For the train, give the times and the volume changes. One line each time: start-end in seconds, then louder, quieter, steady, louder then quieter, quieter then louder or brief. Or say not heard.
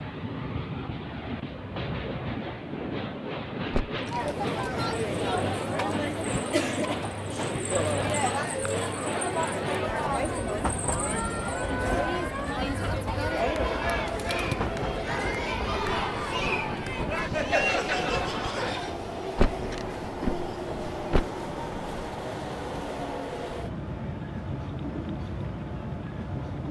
0.0-26.6 steady.